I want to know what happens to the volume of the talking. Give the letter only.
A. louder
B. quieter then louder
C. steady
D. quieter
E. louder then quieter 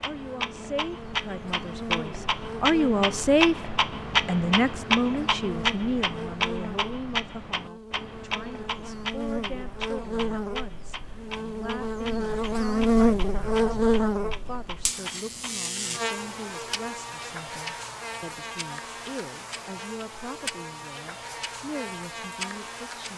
D.